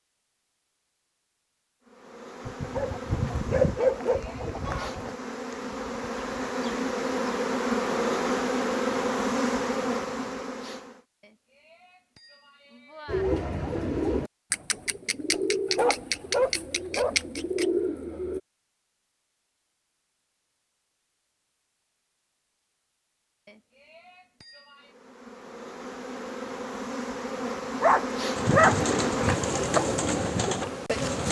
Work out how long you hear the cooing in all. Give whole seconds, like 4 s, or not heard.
8 s.